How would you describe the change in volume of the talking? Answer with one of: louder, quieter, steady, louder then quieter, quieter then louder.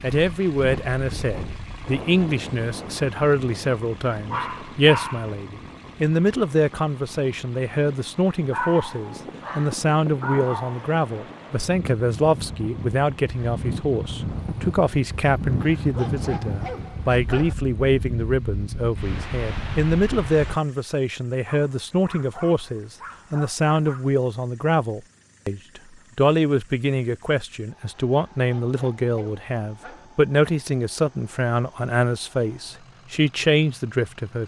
steady.